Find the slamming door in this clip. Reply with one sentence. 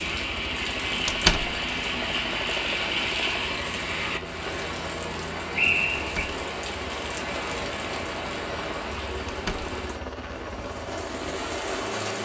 You can hear the slamming door from 1.1 to 1.6 s, from 6.0 to 6.4 s and from 9.2 to 9.8 s.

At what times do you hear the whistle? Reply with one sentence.
You can hear the whistle from 5.5 to 6.3 s.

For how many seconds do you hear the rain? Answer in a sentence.
The rain can be heard for 12 seconds in total.